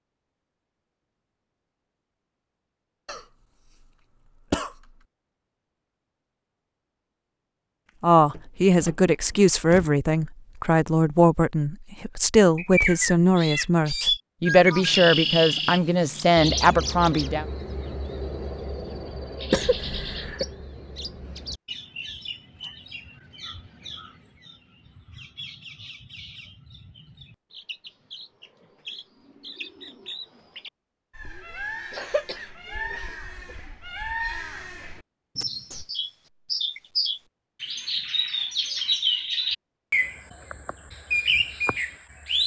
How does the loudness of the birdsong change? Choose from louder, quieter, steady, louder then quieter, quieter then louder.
quieter then louder.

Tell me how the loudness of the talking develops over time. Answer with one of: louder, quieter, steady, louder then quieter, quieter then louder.
steady.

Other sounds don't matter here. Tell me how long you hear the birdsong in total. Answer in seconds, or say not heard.
30 s.